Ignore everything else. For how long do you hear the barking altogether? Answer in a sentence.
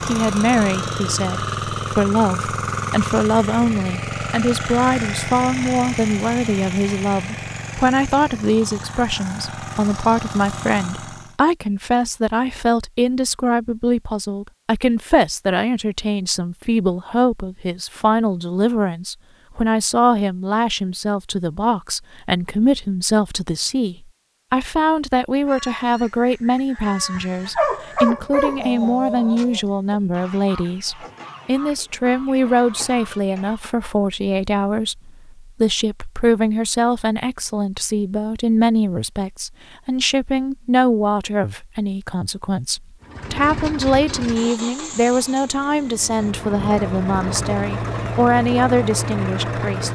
The barking can be heard for 2 seconds in total.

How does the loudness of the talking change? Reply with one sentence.
The volume of the talking stays about the same.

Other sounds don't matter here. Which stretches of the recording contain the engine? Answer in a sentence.
The engine can be heard from 0.0 to 11.3 s and from 43.0 to 49.8 s.